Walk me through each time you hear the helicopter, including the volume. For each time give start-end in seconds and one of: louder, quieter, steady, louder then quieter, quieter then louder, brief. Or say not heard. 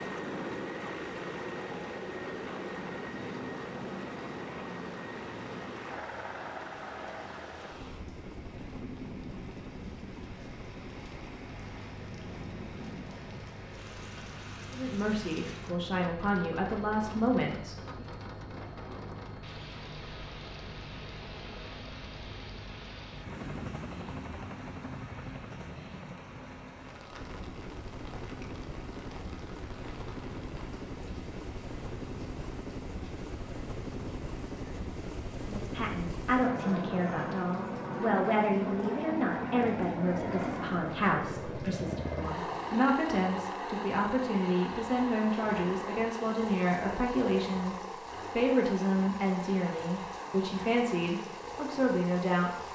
0.0-52.7 quieter then louder.